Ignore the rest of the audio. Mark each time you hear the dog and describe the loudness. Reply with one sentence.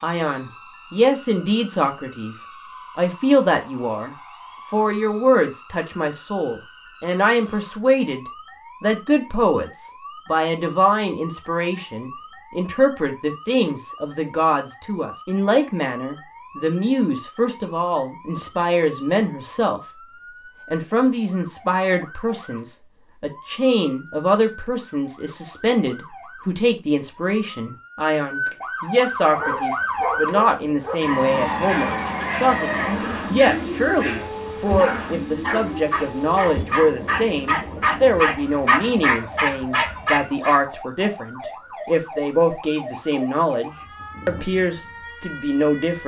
The dog can be heard from 29.1 to 40.6 s, getting louder.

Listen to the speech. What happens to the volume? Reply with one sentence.
The volume of the speech stays about the same.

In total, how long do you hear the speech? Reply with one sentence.
The speech can be heard for 45 seconds in total.